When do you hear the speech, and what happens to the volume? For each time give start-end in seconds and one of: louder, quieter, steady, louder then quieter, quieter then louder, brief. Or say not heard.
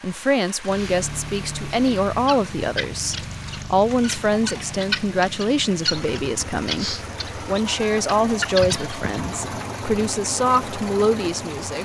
0.0-11.7 steady.